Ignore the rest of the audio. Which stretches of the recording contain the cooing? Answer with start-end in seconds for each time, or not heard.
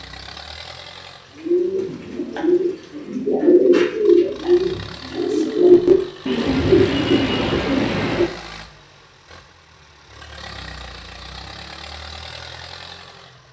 1.4-8.2.